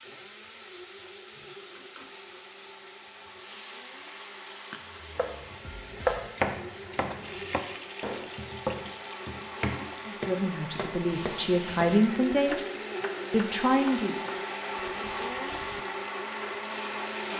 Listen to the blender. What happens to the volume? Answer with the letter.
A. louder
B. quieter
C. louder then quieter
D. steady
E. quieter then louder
A.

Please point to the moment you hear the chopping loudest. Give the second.
6 s.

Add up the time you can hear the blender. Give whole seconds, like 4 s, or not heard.
17 s.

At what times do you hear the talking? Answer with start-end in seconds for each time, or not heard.
10.1-12.7, 13.3-14.2.